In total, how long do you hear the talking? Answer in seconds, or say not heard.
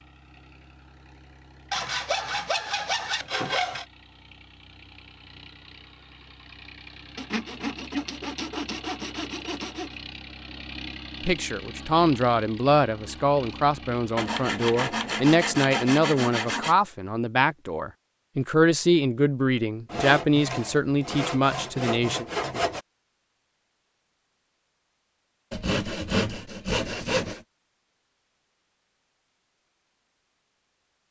11 s.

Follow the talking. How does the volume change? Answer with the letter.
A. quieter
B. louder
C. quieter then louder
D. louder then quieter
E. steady
E.